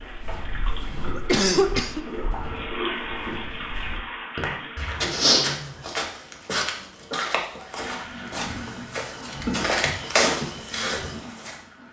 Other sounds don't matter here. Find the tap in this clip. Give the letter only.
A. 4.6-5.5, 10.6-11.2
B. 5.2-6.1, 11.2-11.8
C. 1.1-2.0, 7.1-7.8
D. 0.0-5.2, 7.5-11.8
D.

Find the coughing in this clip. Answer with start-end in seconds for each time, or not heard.
1.1-2.0, 7.1-7.8.